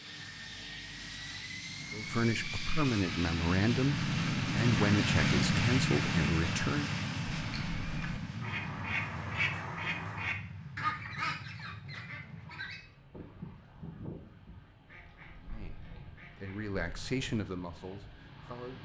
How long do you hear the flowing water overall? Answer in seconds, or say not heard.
not heard.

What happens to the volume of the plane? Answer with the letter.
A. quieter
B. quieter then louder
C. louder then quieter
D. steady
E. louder
C.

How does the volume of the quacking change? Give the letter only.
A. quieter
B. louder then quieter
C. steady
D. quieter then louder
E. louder
A.